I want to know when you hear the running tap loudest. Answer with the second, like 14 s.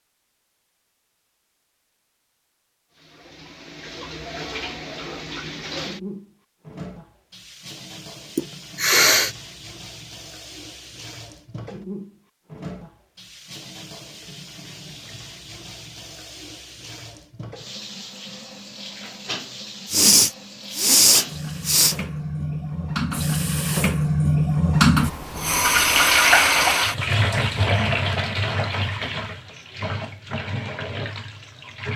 26 s.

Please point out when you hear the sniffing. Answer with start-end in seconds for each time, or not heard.
8.3-9.3, 19.9-21.9.